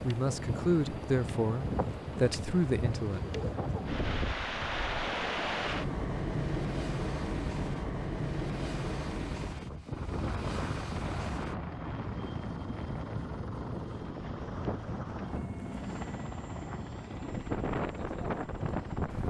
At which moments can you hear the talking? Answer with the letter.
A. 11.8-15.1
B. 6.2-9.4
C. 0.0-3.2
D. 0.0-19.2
C.